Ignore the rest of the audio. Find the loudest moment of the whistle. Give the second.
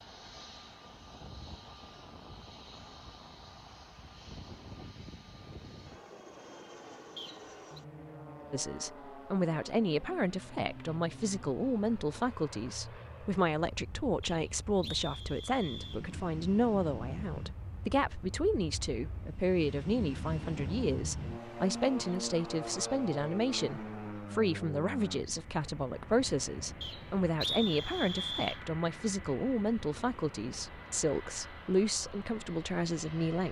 28 s.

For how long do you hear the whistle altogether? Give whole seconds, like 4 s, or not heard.
4 s.